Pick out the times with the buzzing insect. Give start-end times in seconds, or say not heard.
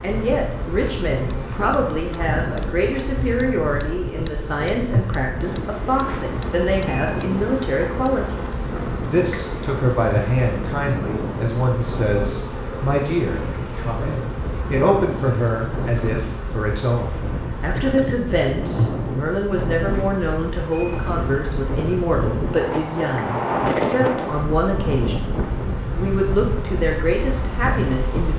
0.0-28.3.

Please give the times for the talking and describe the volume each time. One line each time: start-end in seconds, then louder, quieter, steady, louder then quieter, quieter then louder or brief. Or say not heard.
0.0-28.3 steady.